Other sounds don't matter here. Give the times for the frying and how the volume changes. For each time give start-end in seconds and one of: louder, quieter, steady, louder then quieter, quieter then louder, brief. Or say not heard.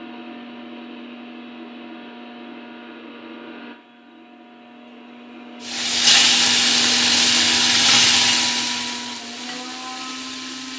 5.6-10.7 quieter.